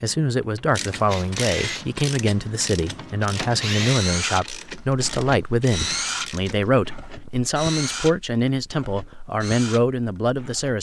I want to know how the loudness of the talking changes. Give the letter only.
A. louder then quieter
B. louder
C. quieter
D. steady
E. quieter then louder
D.